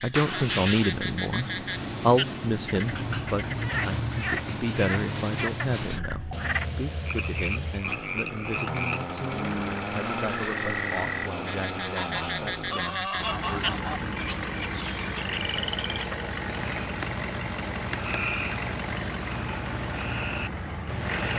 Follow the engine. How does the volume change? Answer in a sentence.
The volume of the engine stays about the same.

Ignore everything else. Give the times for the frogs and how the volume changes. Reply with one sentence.
The frogs can be heard from 0.0 to 21.3 s, at a steady volume.